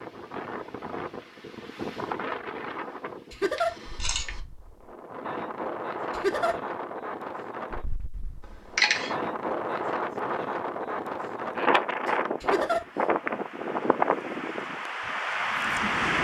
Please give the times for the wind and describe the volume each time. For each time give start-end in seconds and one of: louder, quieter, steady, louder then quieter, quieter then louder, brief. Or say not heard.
0.0-16.1 louder.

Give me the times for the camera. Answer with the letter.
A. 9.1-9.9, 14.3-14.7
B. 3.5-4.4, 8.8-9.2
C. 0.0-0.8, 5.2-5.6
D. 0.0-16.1
B.